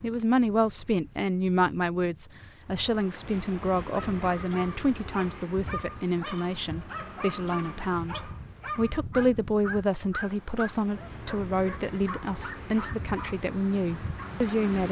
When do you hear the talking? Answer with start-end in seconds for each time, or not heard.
0.0-14.8.